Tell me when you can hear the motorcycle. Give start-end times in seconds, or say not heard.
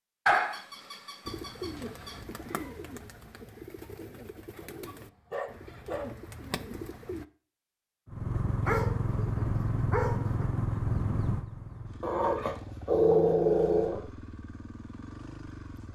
8.1-15.9.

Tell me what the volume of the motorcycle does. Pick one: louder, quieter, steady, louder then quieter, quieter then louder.
quieter.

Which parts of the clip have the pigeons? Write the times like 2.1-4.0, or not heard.
1.2-7.2.